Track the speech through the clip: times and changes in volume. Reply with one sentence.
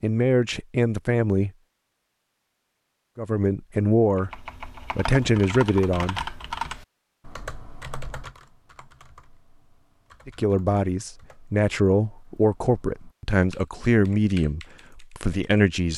The speech can be heard briefly from 0.0 to 1.5 s; briefly from 3.1 to 4.3 s; briefly from 5.0 to 6.2 s; and from 10.2 to 15.9 s, getting quieter.